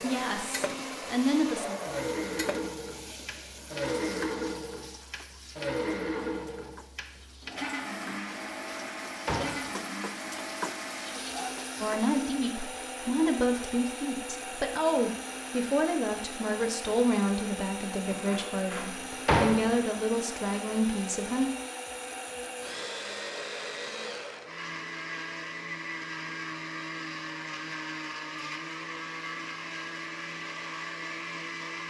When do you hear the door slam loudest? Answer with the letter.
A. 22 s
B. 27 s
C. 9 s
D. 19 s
D.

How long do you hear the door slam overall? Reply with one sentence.
You can hear the door slam for 3 seconds altogether.